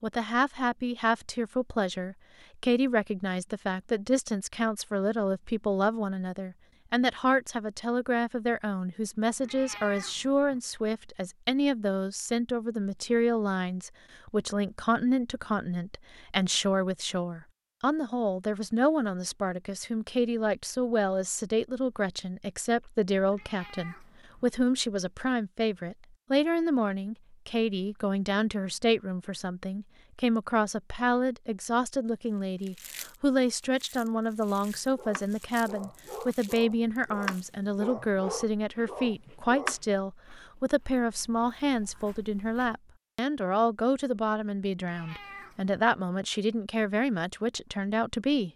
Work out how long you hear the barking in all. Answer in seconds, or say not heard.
5 s.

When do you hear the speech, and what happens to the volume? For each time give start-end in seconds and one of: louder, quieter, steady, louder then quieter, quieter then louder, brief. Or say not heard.
0.0-48.5 steady.